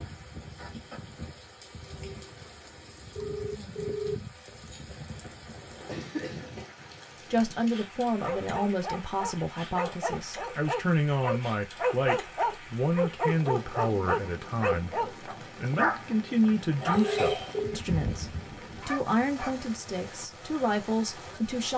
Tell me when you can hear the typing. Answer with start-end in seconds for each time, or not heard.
not heard.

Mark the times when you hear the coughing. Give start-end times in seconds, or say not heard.
5.0-6.7, 16.8-17.6.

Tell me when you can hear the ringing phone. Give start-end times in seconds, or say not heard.
3.1-4.8, 16.9-17.8.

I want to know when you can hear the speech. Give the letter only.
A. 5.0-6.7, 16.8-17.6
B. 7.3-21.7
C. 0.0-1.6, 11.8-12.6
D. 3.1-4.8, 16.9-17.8
B.